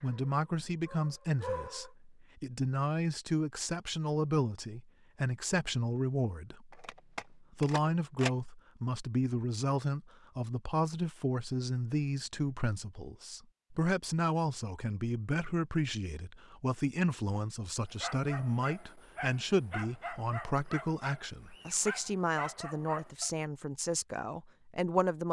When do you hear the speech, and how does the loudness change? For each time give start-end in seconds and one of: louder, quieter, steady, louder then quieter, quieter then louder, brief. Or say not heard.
0.0-25.2 steady.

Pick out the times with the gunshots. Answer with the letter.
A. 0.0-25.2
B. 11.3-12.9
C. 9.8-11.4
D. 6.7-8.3
D.